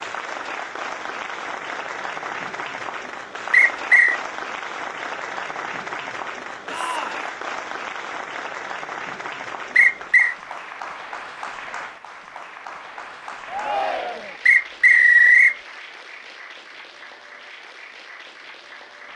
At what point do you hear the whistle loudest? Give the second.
15 s.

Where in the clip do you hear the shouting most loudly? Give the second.
14 s.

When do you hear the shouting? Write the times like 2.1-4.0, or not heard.
6.7-7.3, 13.4-14.4.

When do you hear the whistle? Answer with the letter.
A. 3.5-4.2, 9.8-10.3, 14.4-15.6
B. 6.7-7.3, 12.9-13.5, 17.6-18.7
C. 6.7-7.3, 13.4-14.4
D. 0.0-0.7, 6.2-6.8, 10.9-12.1
A.